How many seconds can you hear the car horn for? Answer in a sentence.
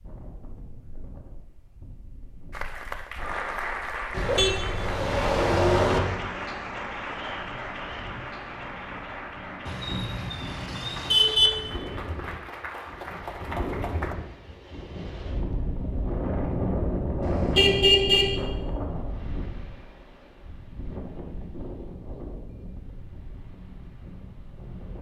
The car horn can be heard for 5 seconds in total.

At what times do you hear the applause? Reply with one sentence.
The applause can be heard from 2.5 to 14.2 s.